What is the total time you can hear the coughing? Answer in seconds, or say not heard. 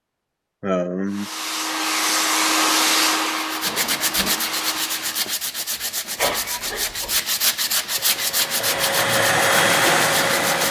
2 s.